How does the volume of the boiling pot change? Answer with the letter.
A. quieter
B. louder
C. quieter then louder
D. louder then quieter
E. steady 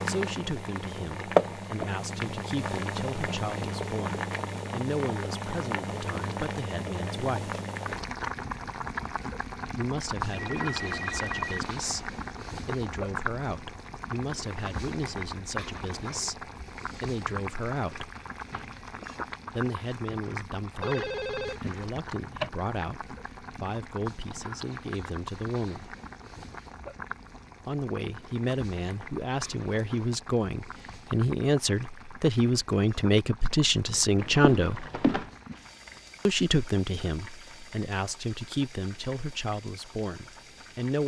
A.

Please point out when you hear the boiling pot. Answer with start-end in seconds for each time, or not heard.
0.0-41.0.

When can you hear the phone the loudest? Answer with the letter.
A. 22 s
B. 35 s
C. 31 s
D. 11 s
B.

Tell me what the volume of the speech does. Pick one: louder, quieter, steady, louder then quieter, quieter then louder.
louder.